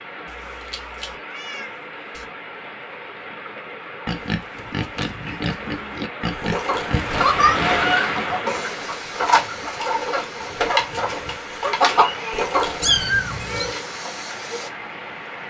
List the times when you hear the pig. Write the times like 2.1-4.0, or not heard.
4.0-14.7.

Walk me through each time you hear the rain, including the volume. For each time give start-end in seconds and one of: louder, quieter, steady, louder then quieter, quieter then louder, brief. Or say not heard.
0.0-15.4 louder then quieter.